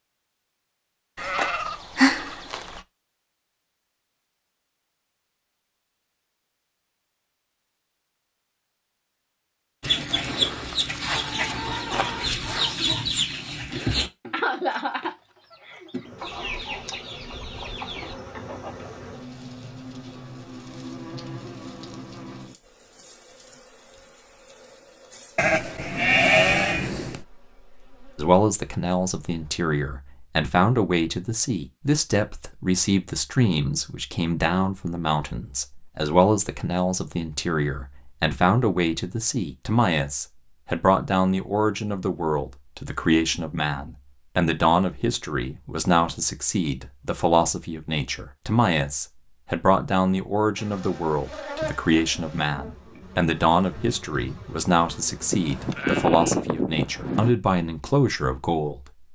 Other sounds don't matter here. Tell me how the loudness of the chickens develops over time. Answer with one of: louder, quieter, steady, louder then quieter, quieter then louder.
quieter.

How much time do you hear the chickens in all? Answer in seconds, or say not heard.
9 s.